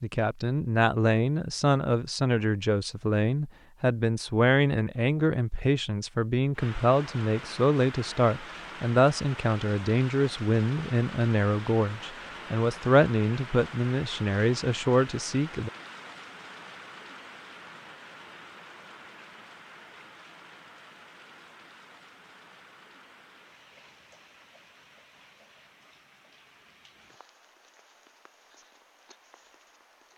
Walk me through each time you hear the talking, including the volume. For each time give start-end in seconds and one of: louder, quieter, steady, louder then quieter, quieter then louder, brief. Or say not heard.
0.0-15.7 steady.